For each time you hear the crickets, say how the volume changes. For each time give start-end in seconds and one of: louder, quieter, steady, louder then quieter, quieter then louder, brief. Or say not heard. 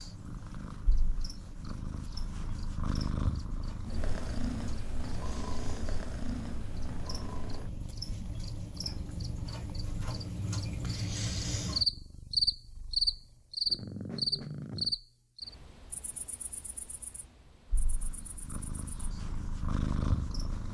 0.0-20.6 louder then quieter.